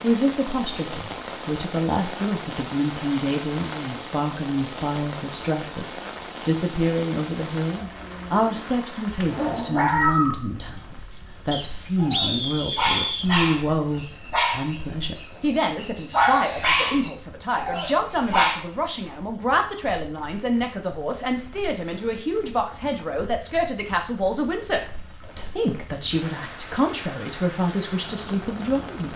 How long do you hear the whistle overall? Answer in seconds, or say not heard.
2 s.